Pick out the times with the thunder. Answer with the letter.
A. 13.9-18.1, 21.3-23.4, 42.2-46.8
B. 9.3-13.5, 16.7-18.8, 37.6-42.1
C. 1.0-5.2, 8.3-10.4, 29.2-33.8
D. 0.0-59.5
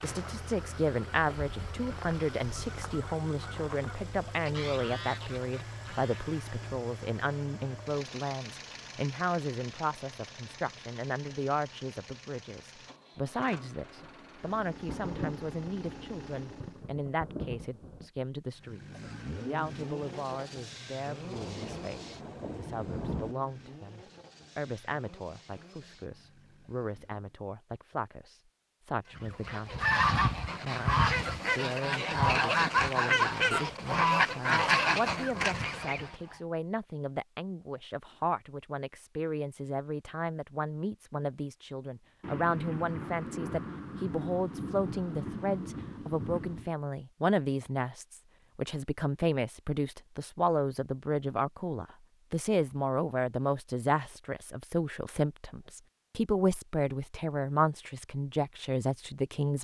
A.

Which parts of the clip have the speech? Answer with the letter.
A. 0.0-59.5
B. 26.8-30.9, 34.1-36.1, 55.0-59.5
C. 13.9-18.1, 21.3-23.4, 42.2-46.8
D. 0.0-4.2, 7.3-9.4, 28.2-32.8
A.